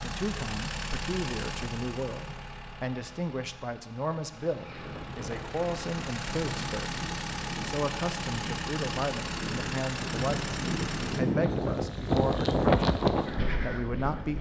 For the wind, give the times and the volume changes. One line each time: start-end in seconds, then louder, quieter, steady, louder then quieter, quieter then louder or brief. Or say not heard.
4.5-14.3 louder.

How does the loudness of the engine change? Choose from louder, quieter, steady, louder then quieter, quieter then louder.
quieter then louder.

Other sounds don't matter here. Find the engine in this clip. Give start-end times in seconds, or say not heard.
0.0-11.2.